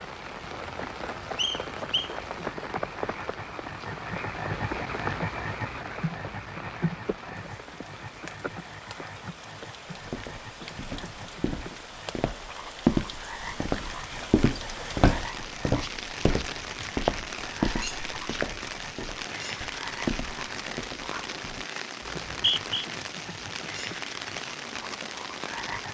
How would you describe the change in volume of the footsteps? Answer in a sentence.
The loudness of the footsteps goes up, then down.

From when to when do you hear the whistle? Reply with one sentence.
The whistle can be heard from 1.4 to 2.1 s and from 22.0 to 22.9 s.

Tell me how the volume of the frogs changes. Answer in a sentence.
The loudness of the frogs goes down.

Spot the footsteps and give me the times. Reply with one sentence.
You can hear the footsteps from 9.9 to 21.6 s.